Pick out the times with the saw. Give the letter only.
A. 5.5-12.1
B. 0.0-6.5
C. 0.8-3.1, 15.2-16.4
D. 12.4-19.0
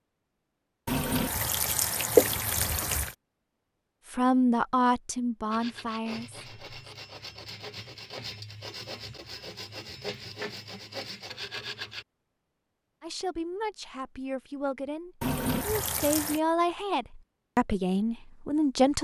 A.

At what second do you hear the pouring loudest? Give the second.
2 s.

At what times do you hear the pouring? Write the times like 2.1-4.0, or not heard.
0.8-3.1, 15.2-16.4.